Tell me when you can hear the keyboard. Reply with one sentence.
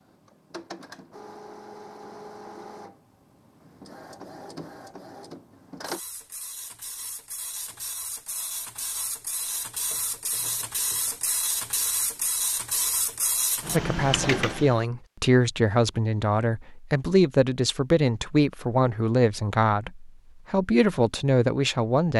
The keyboard can't be heard in this clip.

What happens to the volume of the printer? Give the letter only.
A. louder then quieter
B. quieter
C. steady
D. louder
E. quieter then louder
D.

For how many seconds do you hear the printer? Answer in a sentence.
You can hear the printer for 15 seconds altogether.